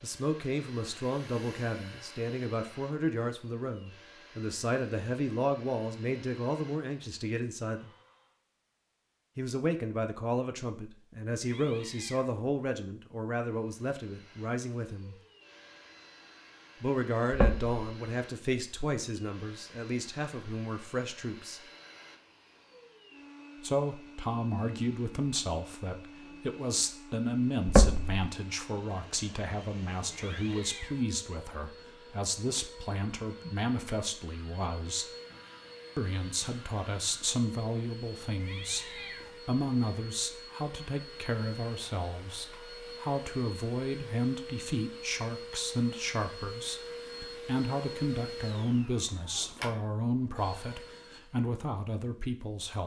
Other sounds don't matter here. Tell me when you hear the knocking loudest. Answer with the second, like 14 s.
28 s.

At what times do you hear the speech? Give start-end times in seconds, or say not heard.
0.0-7.9, 9.3-15.2, 16.8-21.6, 23.6-35.0, 36.0-52.8.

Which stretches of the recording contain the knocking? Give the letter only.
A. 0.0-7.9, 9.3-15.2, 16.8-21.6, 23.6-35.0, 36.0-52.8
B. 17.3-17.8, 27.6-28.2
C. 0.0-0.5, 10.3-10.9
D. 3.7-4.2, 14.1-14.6
B.